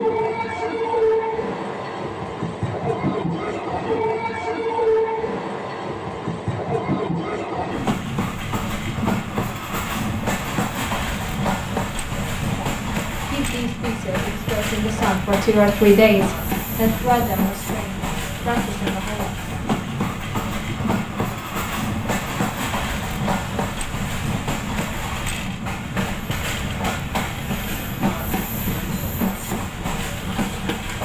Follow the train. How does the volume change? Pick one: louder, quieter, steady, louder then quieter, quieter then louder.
steady.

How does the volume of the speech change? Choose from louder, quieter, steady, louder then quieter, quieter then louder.
louder then quieter.